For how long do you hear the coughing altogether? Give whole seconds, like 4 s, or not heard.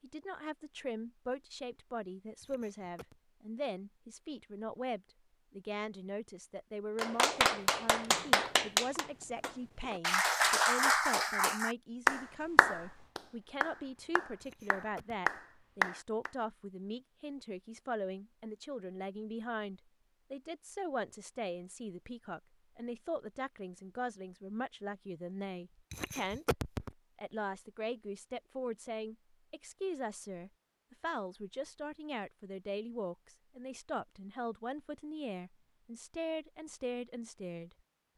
3 s.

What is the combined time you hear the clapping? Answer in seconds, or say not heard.
9 s.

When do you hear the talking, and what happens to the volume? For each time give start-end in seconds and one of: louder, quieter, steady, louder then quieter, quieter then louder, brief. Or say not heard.
0.0-37.8 steady.